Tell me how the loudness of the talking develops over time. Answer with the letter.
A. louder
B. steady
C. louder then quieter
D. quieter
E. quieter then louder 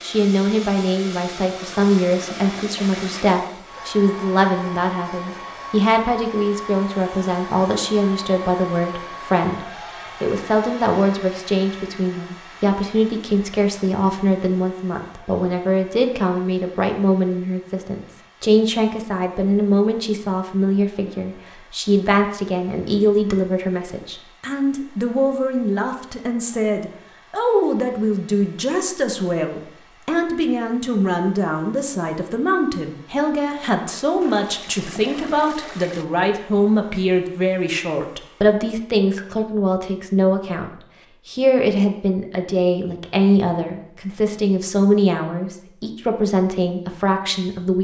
B.